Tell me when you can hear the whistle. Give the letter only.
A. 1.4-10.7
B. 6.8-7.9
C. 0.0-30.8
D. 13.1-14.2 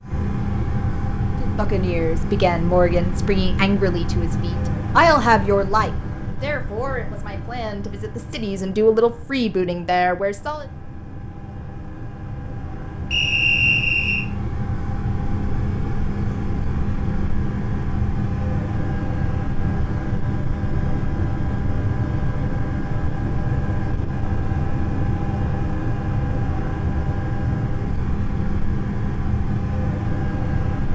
D.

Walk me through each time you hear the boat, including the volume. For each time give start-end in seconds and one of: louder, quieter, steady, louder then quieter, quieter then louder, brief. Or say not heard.
0.0-30.8 quieter then louder.